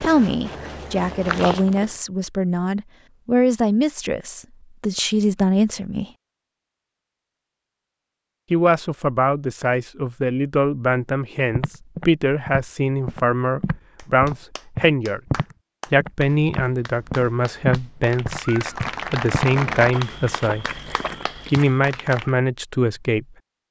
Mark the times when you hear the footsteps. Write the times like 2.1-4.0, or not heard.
0.0-1.9, 11.5-21.9.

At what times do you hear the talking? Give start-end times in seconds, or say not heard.
0.0-6.0, 8.5-15.2, 15.9-20.8, 21.4-23.2.